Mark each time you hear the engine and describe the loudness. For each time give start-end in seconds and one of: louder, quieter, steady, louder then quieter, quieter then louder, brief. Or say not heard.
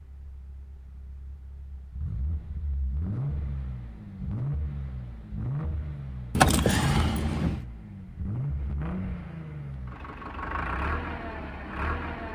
0.0-12.3 louder.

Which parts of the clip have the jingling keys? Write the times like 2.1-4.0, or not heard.
6.3-7.7.